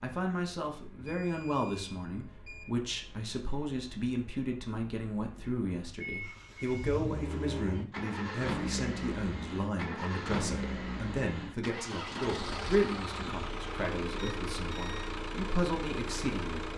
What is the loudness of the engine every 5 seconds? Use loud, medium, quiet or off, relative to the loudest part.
quiet, loud, loud, loud.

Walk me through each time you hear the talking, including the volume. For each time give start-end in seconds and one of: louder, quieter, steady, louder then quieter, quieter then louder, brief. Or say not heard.
0.0-16.6 steady.